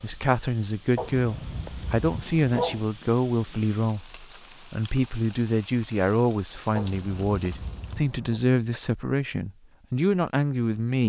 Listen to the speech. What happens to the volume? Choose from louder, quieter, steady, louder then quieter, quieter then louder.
steady.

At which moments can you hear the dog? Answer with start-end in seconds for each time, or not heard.
0.9-2.9, 6.8-8.4.